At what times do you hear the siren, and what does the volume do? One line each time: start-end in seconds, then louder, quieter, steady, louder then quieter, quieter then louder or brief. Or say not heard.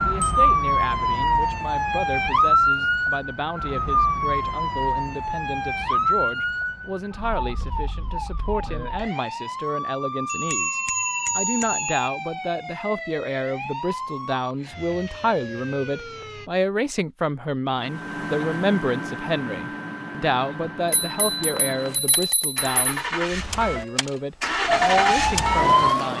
0.0-16.5 quieter
24.6-26.1 brief.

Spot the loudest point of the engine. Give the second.
25 s.